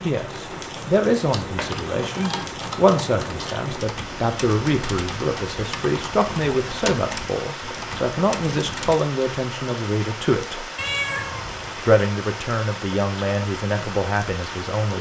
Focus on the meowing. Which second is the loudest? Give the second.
11 s.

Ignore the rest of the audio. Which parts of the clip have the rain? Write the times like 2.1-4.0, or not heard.
0.0-14.9.